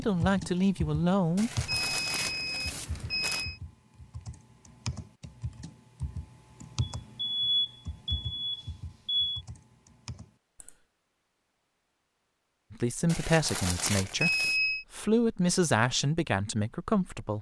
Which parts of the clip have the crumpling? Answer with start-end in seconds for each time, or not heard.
1.4-3.5, 13.1-14.6.